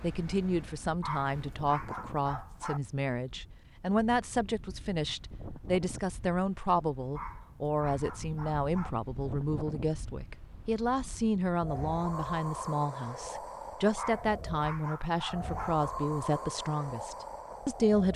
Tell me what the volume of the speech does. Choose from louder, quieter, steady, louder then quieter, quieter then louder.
steady.